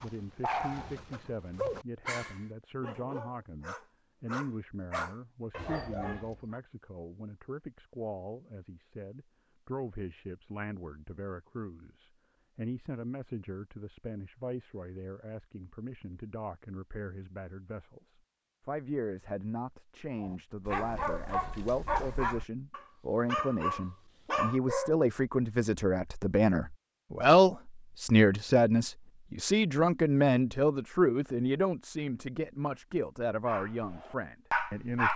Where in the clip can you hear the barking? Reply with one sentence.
You can hear the barking from 0.0 to 6.4 s, from 20.2 to 25.0 s and from 33.5 to 35.1 s.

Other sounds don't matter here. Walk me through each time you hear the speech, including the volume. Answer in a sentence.
The speech can be heard from 0.0 to 35.1 s, getting louder.